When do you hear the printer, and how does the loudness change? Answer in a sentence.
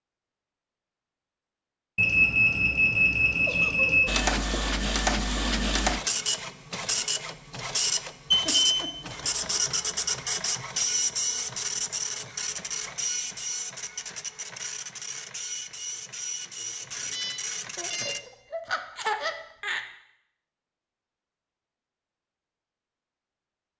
The printer can be heard from 4.0 to 18.2 s, getting quieter.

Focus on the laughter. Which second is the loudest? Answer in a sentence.
The volume of the laughter peaks at 19 seconds.